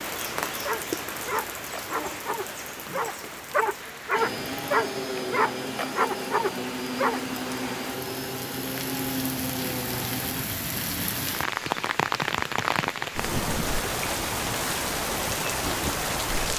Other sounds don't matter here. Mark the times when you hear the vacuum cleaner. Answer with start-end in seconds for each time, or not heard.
4.2-10.4.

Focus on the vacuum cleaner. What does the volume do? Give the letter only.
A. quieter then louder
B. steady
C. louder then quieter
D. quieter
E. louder
B.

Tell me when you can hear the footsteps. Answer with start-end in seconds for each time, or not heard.
not heard.